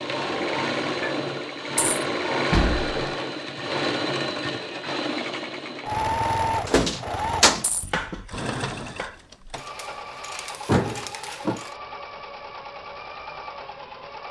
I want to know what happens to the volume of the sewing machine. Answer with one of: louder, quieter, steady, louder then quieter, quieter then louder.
quieter.